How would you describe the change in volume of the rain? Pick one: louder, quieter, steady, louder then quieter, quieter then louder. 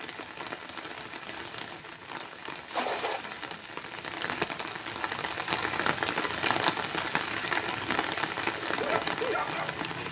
louder.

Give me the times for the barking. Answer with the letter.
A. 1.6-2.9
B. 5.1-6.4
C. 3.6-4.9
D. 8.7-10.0
D.